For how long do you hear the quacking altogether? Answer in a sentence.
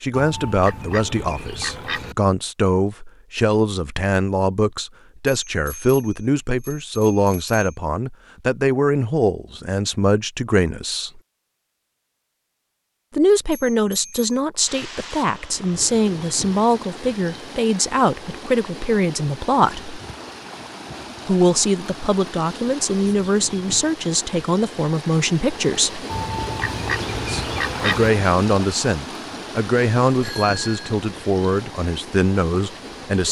The quacking can be heard for 4 seconds in total.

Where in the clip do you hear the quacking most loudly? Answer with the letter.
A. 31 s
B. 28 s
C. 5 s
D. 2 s
B.